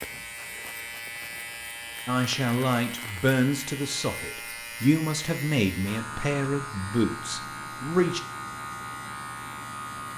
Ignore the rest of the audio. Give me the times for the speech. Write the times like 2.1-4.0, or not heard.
2.0-8.2.